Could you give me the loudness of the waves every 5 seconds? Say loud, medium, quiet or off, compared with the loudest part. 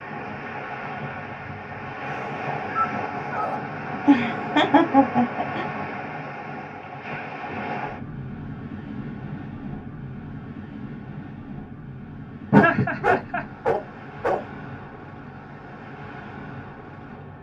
loud, loud, medium, medium.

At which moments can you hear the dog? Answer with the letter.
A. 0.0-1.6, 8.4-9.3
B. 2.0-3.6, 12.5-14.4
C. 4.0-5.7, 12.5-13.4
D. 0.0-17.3
B.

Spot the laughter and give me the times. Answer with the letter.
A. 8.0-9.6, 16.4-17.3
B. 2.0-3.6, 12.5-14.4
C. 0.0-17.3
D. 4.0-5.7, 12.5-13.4
D.